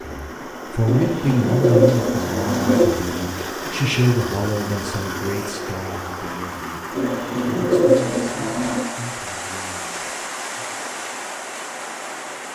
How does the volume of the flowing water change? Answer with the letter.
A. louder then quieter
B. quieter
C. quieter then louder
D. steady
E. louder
D.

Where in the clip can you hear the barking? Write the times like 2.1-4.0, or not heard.
not heard.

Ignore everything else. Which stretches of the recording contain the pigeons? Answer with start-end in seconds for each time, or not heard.
0.8-2.9, 7.0-8.8.